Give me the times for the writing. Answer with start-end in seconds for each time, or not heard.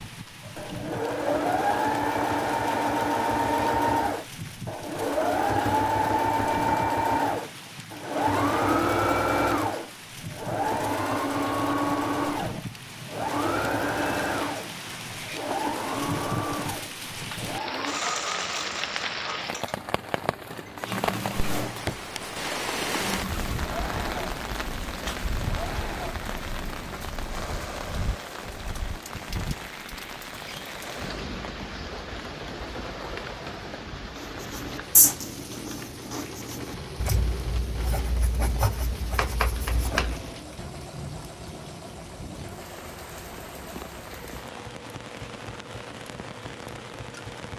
34.1-40.3.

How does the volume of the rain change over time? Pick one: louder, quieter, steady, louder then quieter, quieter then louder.
louder then quieter.